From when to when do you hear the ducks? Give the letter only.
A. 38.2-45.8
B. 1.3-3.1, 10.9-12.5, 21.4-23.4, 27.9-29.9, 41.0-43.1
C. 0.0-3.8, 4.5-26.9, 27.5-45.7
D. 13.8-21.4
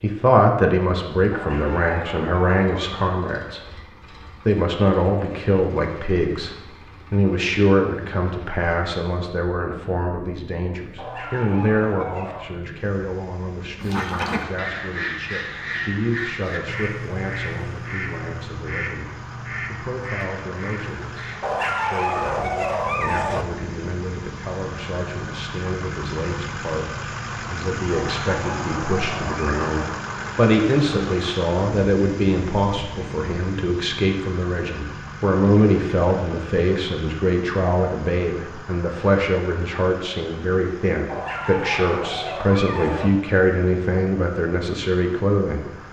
D.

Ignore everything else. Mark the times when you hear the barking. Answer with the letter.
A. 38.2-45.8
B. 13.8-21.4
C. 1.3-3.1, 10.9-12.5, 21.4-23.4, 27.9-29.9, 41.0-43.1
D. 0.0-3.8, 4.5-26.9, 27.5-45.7
C.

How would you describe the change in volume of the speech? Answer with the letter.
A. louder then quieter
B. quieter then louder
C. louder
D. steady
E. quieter
B.